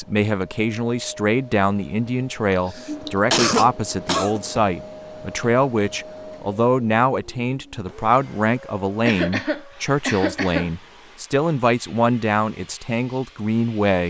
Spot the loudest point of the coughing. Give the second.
3 s.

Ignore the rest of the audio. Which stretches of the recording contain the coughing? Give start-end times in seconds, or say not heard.
2.5-4.5, 9.1-10.7.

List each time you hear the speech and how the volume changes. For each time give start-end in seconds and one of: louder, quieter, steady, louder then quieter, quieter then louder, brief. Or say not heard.
0.0-14.0 steady.